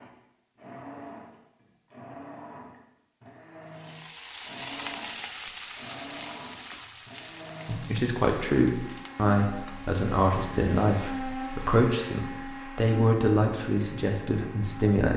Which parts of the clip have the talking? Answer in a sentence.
The talking can be heard from 7.7 to 15.1 s.